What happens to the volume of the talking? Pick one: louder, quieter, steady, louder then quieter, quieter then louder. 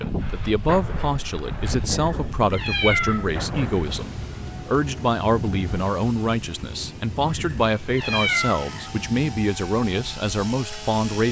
steady.